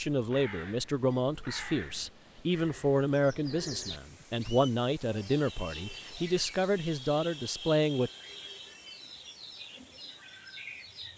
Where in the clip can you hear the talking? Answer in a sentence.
The talking can be heard from 0.0 to 8.1 s.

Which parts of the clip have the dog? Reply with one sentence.
The dog can't be heard in this clip.